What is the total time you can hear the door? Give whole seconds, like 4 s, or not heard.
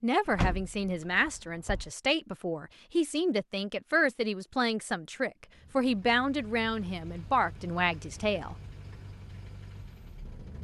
2 s.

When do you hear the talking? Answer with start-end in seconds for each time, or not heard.
0.0-8.6.